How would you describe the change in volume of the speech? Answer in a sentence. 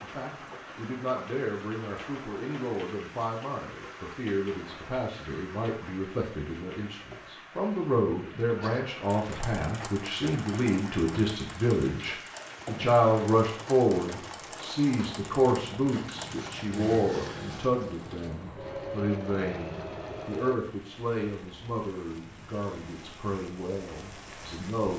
The loudness of the speech goes up, then down.